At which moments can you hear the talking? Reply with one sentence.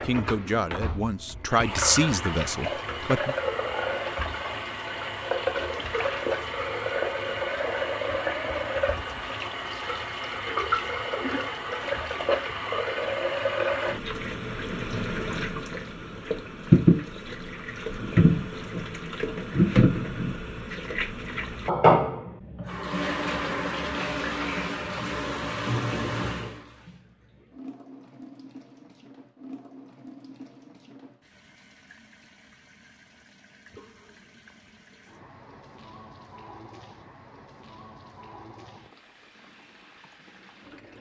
The talking can be heard from 0.0 to 3.4 s.